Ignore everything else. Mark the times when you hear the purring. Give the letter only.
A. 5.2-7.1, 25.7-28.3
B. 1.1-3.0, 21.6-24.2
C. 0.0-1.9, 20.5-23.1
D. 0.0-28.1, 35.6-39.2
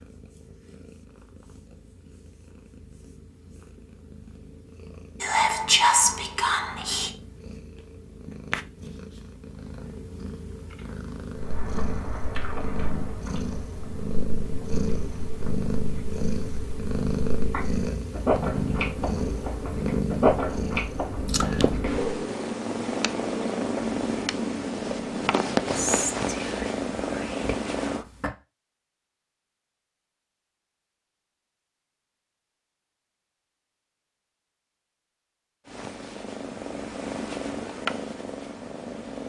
D.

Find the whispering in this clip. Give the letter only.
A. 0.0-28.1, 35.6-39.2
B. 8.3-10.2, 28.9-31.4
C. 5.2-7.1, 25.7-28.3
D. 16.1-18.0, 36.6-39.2
C.